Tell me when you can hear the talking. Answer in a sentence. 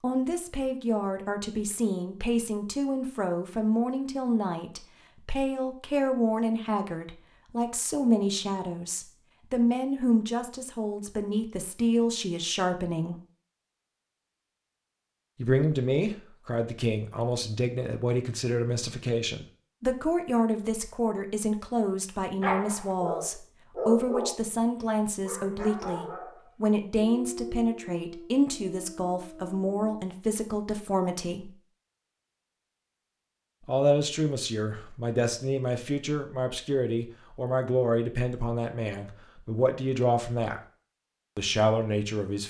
You can hear the talking from 0.0 to 13.2 s, from 15.3 to 31.5 s, from 33.6 to 40.6 s and from 41.4 to 42.4 s.